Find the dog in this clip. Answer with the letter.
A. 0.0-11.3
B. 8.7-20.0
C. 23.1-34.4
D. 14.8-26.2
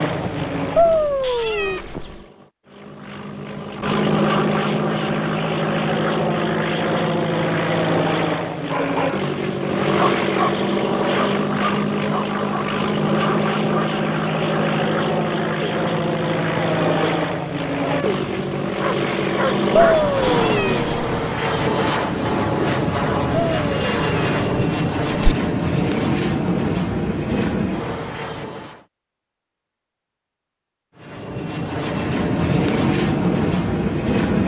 B.